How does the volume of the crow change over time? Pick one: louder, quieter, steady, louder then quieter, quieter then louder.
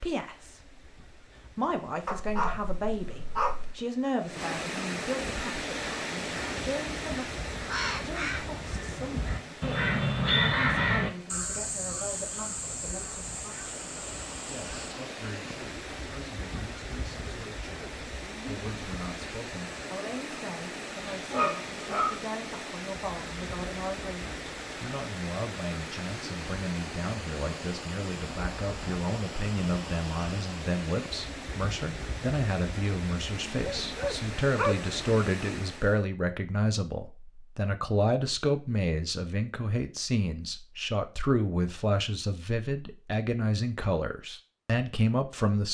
louder then quieter.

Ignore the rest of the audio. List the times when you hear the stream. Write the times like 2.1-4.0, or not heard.
0.1-36.0.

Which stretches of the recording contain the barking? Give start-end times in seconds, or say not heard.
2.0-3.8, 21.1-22.2, 33.8-35.0.